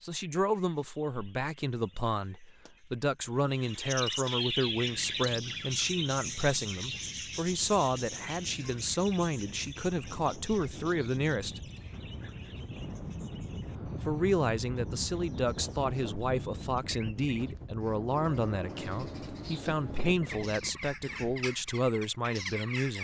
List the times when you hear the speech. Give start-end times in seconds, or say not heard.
0.0-11.6, 13.8-22.9.